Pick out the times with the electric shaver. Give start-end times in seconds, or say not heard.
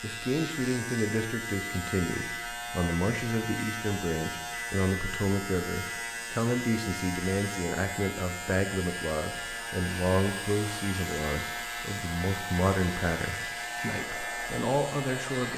0.0-15.5.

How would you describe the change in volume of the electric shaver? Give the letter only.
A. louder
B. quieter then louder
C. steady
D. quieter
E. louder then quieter
C.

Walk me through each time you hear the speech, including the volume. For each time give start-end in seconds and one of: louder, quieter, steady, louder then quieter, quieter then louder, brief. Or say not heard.
0.0-15.5 steady.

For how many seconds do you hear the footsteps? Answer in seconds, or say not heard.
not heard.